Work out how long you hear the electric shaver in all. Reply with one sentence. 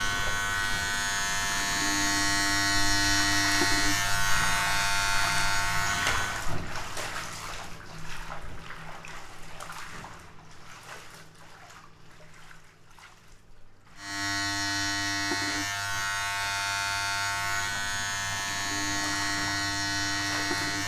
The electric shaver can be heard for 13 seconds in total.